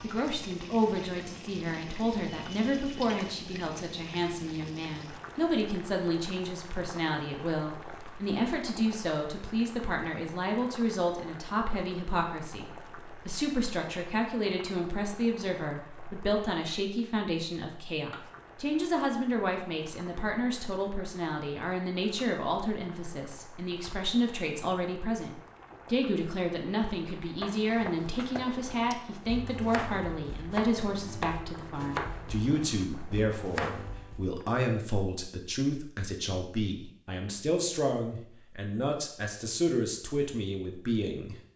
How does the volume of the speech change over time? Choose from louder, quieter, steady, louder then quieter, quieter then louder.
steady.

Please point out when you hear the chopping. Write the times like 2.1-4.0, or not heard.
27.4-34.5.